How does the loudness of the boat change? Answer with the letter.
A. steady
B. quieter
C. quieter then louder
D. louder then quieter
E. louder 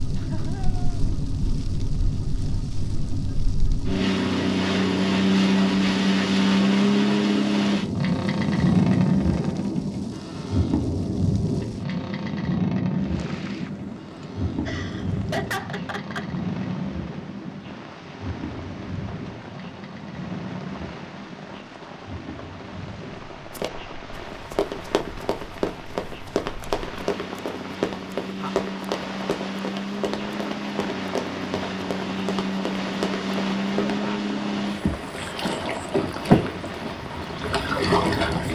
C.